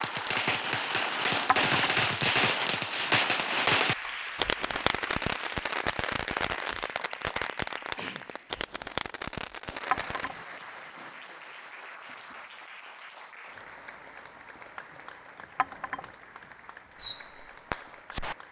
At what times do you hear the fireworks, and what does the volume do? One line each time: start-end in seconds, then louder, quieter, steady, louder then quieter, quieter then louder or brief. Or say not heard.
0.0-10.3 quieter
16.9-18.4 brief.